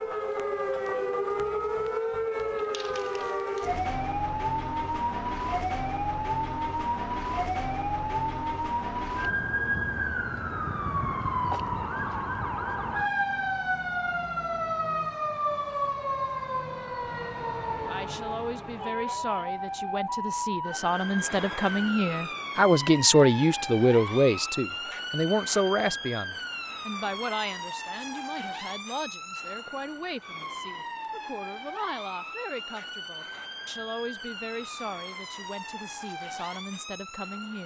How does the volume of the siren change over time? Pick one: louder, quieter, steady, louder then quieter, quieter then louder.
quieter.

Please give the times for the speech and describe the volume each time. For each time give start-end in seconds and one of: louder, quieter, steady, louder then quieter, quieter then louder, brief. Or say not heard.
17.9-37.6 louder then quieter.